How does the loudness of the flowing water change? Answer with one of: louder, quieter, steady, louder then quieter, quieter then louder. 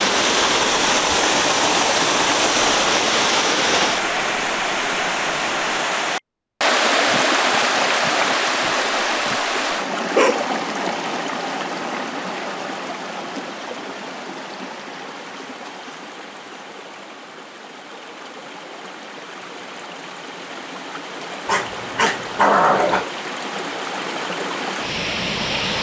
quieter then louder.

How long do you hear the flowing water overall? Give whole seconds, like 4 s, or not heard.
26 s.